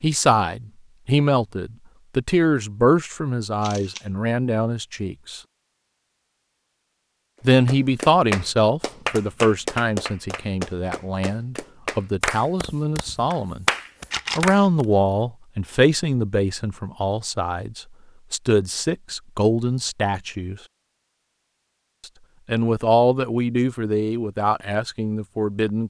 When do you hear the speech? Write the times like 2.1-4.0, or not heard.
0.0-5.4, 7.4-13.7, 14.3-20.6, 22.4-25.8.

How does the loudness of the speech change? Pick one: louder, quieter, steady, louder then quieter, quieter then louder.
steady.